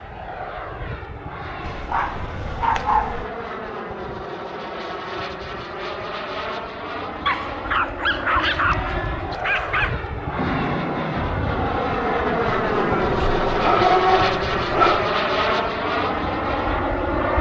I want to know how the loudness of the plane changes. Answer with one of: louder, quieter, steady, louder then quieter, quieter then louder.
louder.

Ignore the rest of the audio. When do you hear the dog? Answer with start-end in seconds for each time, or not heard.
1.6-3.2, 7.2-9.9, 12.7-15.1.